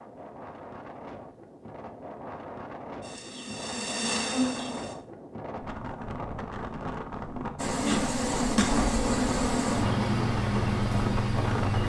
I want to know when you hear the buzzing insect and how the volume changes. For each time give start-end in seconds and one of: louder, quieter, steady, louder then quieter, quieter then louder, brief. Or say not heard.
3.0-5.0 brief
7.5-11.8 steady.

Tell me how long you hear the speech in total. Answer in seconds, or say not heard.
not heard.